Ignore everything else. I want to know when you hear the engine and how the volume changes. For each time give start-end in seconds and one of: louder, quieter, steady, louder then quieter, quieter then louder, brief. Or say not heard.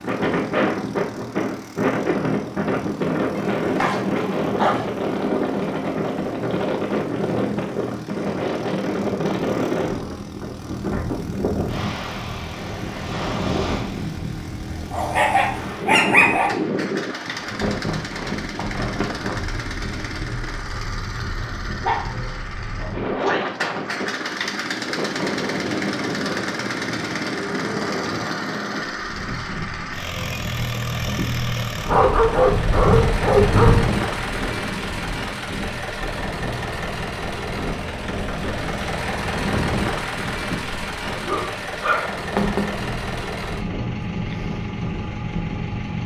0.0-46.0 louder.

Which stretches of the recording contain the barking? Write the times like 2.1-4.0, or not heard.
3.4-4.8, 14.9-16.6, 21.8-23.4, 31.8-33.9, 41.0-42.7.